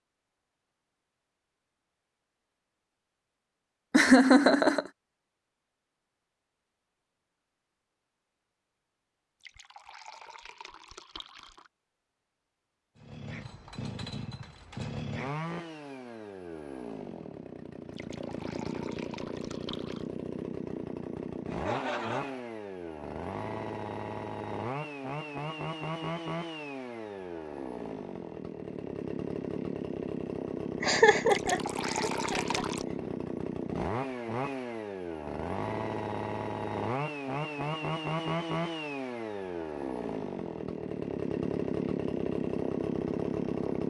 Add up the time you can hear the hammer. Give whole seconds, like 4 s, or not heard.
not heard.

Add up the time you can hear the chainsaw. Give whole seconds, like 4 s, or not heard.
31 s.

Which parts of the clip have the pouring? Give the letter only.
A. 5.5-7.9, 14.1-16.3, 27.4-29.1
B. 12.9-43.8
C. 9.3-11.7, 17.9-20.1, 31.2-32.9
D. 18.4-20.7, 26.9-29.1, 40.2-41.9
C.